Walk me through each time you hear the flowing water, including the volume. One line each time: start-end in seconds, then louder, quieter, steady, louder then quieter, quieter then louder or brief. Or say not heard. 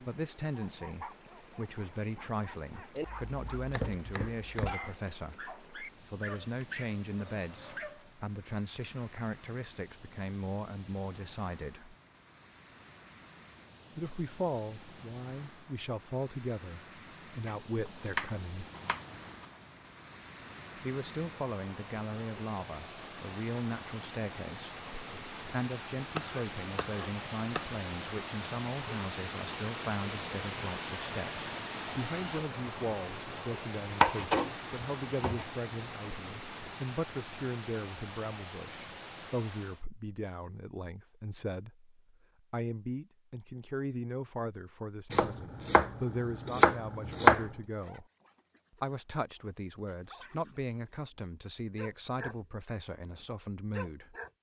0.0-39.9 louder.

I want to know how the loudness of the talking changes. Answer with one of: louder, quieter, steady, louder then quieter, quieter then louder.
steady.